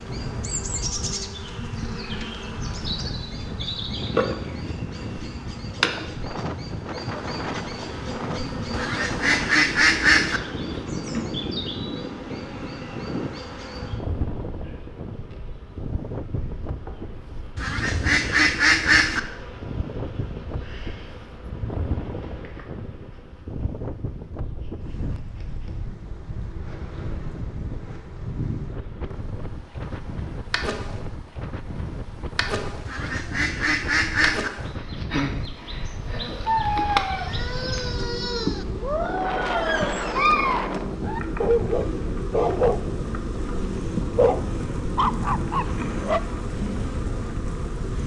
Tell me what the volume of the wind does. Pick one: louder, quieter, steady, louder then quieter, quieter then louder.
steady.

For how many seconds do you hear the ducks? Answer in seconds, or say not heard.
5 s.